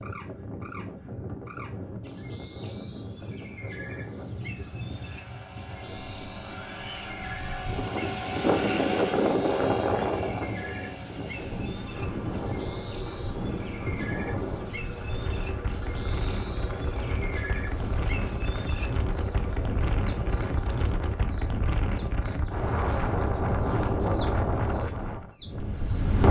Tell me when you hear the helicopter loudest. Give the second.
9 s.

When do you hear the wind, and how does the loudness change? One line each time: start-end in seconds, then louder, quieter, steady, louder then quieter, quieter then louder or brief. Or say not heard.
0.0-26.2 louder.